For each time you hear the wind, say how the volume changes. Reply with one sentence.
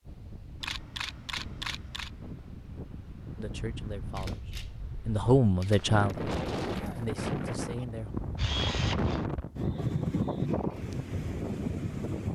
The wind can be heard from 0.0 to 12.3 s, getting louder.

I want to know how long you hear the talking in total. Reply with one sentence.
You can hear the talking for 4 seconds altogether.